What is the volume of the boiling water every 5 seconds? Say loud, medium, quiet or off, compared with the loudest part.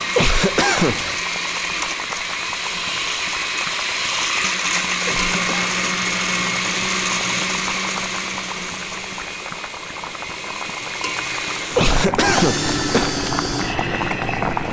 medium, medium, loud.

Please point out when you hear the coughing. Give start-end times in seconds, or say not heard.
0.1-1.2, 5.0-5.6, 11.8-13.1.